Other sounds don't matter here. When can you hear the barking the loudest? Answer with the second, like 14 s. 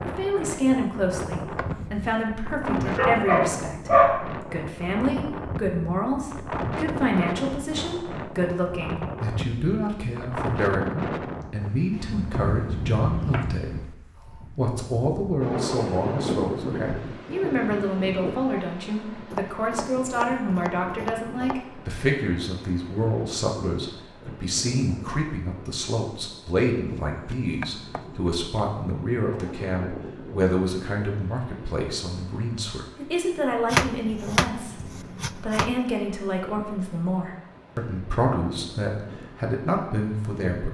4 s.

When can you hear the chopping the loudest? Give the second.
34 s.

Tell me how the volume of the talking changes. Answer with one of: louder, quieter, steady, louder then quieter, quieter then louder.
steady.